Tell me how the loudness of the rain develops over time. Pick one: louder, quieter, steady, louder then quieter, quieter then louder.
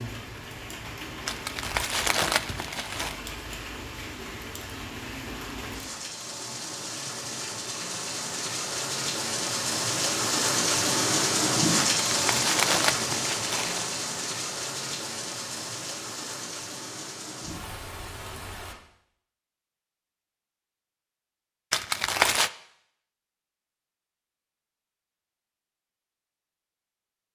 louder then quieter.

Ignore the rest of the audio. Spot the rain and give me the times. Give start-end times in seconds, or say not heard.
0.0-18.8.